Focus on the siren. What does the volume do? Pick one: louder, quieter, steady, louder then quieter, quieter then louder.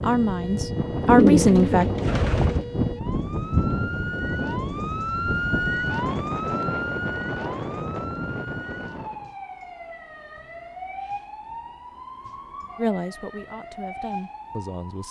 louder then quieter.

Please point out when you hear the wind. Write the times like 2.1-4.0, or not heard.
0.0-9.3.